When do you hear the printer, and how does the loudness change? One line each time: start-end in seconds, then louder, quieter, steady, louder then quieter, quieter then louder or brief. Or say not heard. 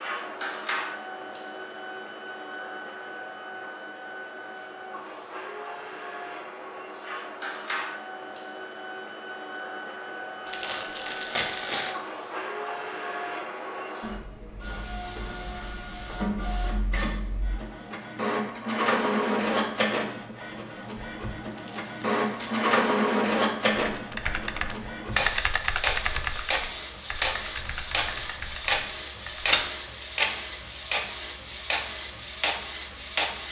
0.0-33.4 louder.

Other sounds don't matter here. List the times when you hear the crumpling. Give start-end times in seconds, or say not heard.
10.4-11.9, 21.5-22.7.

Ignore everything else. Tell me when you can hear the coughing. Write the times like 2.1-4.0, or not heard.
not heard.